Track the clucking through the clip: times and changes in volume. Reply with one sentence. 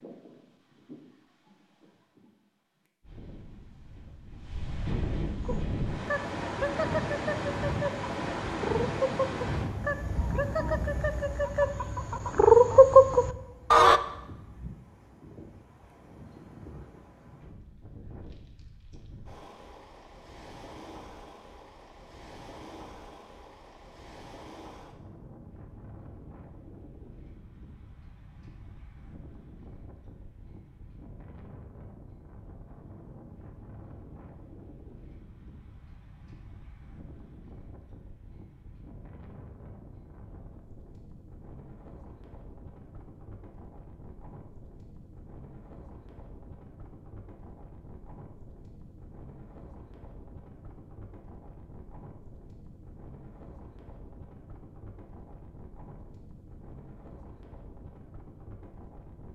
The clucking can be heard from 5.4 to 14.0 s, getting louder.